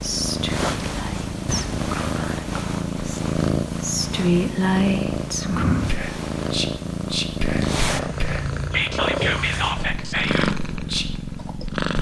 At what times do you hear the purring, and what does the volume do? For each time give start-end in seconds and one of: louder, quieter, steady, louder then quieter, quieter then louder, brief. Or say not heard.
0.0-11.9 steady.